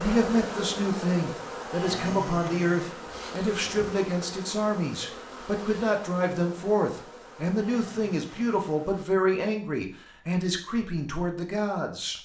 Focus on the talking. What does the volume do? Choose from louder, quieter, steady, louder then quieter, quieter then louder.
steady.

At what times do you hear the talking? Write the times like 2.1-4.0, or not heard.
0.0-12.1.